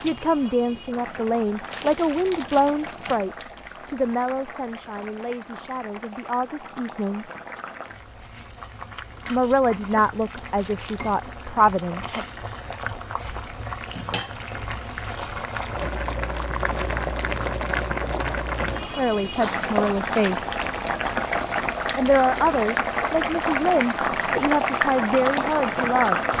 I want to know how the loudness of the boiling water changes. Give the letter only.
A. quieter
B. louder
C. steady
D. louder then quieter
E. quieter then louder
B.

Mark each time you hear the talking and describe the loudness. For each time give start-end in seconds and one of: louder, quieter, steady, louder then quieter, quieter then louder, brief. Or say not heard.
0.0-7.2 quieter
9.3-12.2 brief
18.9-20.5 brief
21.9-26.2 steady.